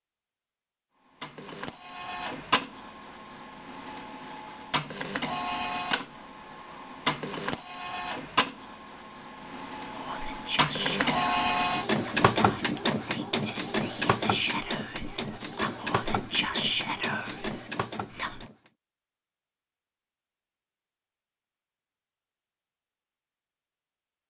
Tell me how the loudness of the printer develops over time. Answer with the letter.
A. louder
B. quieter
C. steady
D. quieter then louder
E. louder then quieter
E.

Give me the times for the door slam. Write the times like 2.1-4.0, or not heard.
not heard.